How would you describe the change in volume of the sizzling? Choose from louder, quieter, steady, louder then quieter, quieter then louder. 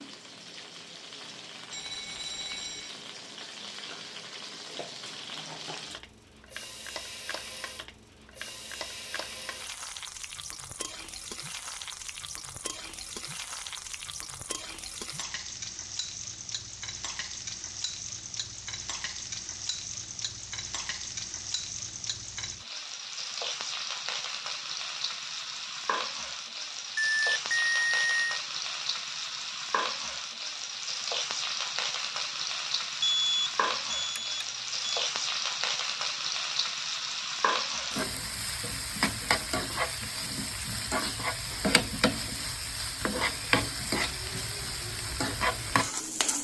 louder.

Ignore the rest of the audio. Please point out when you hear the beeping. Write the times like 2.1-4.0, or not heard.
1.7-3.0, 27.1-28.4, 33.0-35.0.